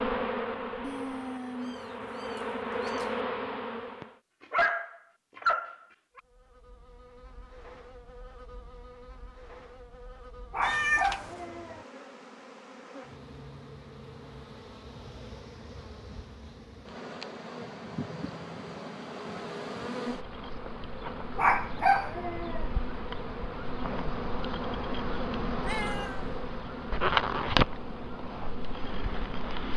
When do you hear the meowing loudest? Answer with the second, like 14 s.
11 s.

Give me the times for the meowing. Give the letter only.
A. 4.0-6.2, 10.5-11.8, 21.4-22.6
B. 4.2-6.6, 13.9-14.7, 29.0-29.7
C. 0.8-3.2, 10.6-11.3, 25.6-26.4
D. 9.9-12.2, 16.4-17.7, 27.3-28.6
C.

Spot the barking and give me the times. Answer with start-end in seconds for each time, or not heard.
4.0-6.2, 10.5-11.8, 21.4-22.6.